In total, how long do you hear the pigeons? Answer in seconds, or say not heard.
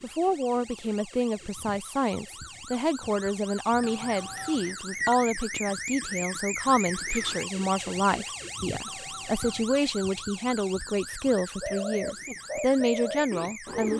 2 s.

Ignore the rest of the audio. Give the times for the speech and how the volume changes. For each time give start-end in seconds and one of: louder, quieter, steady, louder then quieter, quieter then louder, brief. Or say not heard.
0.0-13.9 steady.